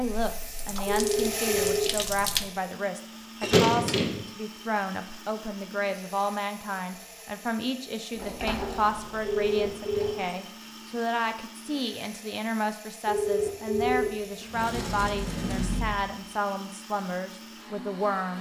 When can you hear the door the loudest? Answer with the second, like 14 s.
4 s.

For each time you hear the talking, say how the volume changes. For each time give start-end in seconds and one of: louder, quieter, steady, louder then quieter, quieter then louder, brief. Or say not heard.
0.0-18.3 steady.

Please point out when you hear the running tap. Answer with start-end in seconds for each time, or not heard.
0.0-2.5.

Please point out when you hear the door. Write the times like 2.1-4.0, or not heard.
3.4-4.2, 8.2-10.3, 13.8-16.2.